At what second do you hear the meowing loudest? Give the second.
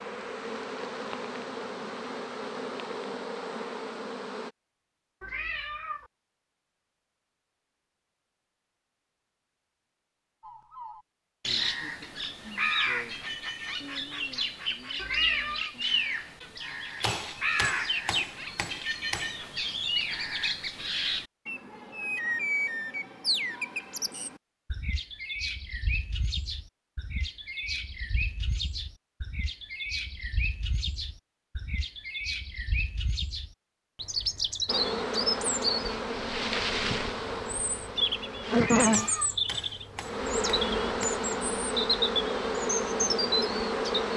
15 s.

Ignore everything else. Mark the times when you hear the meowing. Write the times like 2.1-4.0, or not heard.
5.2-6.1, 14.9-15.7, 38.5-39.4.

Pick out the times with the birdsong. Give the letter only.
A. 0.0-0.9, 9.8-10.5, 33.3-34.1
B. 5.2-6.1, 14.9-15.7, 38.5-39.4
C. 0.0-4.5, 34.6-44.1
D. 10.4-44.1
D.